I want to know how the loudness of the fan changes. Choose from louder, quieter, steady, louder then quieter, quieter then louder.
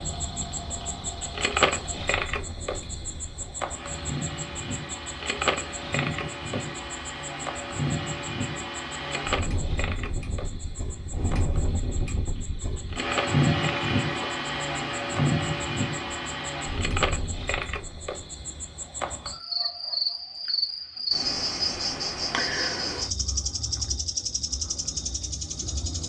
louder.